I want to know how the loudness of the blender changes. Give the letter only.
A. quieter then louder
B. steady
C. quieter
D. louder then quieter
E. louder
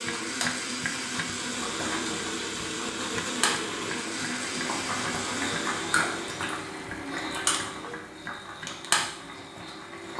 B.